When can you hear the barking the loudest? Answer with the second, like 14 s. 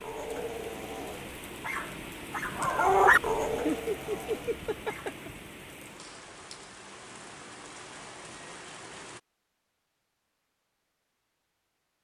3 s.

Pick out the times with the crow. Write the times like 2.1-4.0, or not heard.
not heard.